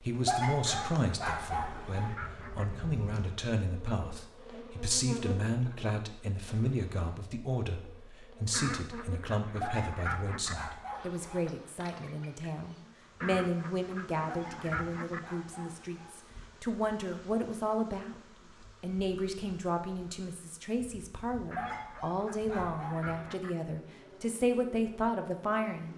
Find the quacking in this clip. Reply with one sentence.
The quacking can be heard from 0.7 to 2.6 s, from 8.5 to 10.6 s, from 13.2 to 15.2 s and from 21.5 to 23.5 s.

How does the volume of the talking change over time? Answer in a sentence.
The loudness of the talking stays about the same.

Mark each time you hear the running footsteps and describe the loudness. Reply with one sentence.
You can't hear the running footsteps here.